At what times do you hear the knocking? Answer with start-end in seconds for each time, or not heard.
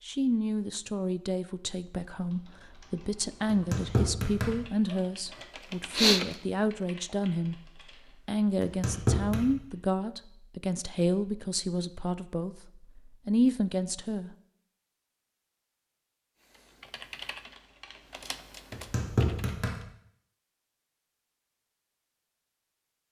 3.5-5.0, 8.6-9.4, 18.7-19.8.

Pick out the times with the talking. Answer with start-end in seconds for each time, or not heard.
0.0-14.3.